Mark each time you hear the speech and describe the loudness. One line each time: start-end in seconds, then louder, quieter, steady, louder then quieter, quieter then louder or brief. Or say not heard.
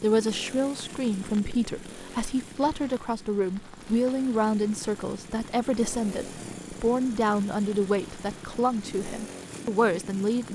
0.0-10.5 steady.